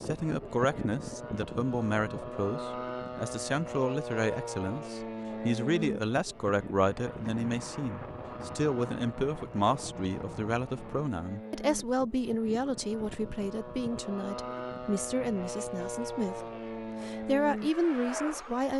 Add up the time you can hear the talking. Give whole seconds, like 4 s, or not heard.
18 s.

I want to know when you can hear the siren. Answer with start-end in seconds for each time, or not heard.
not heard.